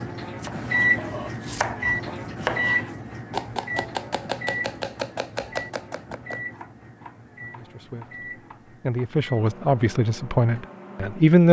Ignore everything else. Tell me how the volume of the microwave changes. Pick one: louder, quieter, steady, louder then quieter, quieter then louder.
quieter.